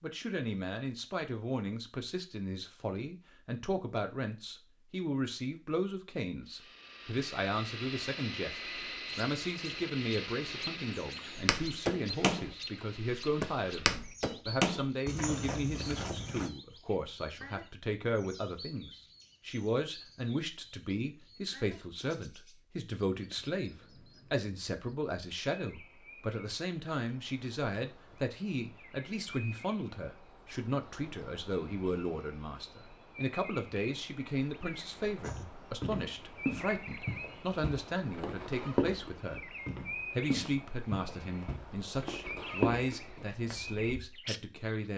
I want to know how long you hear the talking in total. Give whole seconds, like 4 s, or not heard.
44 s.